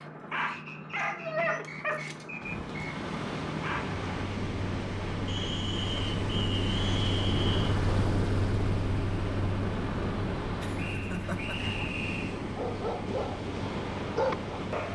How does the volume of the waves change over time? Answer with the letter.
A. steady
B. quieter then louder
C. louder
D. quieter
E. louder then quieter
A.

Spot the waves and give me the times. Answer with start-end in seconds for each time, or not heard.
2.4-14.9.